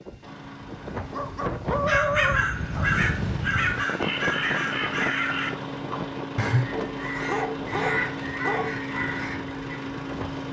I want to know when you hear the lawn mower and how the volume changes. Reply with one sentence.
The lawn mower can be heard from 0.0 to 10.4 s, getting louder.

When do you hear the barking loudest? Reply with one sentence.
The loudest moment of the barking is at 2 seconds.